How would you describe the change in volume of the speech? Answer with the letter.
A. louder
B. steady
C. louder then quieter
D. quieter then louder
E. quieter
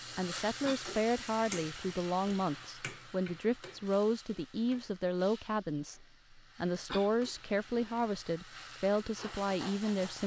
B.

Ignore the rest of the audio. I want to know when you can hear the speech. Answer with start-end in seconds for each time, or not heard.
0.1-10.2.